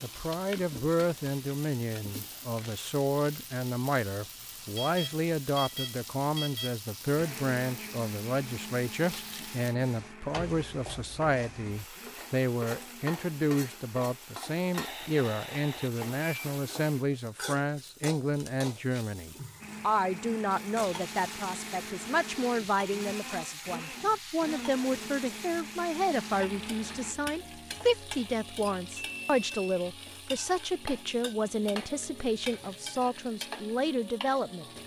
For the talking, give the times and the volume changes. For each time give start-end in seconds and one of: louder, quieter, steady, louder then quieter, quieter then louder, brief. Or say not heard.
0.0-34.6 steady.